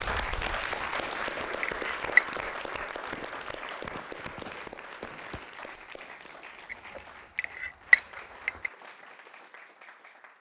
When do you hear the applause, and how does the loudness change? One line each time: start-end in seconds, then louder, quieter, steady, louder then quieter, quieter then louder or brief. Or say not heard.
0.0-10.3 quieter.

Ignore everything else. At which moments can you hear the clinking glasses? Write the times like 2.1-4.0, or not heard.
0.9-2.2, 6.7-8.7.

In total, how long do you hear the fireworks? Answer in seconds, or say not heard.
3 s.